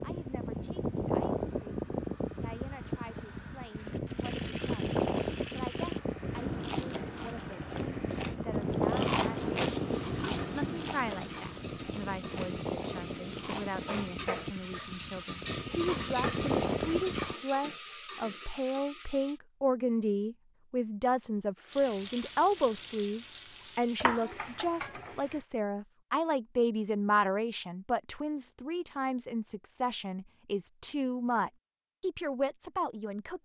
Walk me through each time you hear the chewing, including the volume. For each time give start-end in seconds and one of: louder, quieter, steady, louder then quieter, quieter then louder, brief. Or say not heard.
6.3-14.4 louder then quieter.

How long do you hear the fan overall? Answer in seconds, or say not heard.
17 s.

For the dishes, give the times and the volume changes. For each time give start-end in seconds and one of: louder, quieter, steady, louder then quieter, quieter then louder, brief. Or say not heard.
not heard.